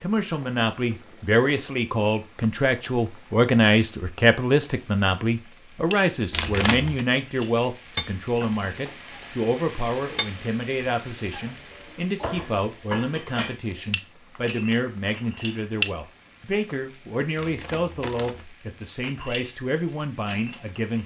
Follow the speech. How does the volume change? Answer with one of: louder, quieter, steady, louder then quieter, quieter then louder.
quieter.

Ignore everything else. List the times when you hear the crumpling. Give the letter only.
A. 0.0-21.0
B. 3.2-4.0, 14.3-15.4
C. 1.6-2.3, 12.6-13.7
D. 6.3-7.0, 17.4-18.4
D.